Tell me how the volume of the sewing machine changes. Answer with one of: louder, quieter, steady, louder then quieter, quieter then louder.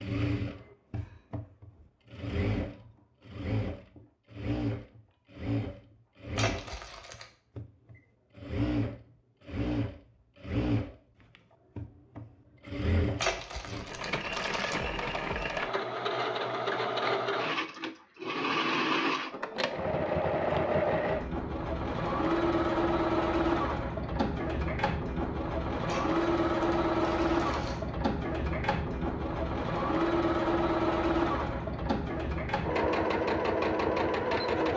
louder.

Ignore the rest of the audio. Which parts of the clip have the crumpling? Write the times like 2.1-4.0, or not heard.
6.3-7.2, 13.2-14.8, 25.9-27.8.